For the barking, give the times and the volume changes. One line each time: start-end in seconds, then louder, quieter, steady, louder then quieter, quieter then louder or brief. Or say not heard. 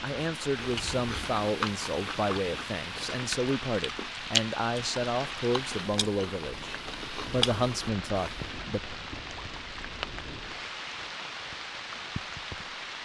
not heard.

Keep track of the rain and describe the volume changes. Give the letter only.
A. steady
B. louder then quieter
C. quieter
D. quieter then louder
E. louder
A.